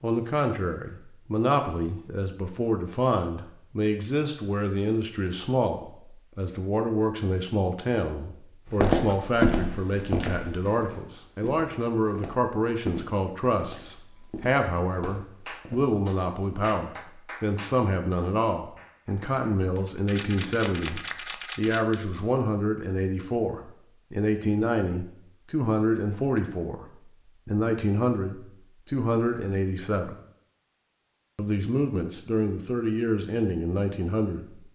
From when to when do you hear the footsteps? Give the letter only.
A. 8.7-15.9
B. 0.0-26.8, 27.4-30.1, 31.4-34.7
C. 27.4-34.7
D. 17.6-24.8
A.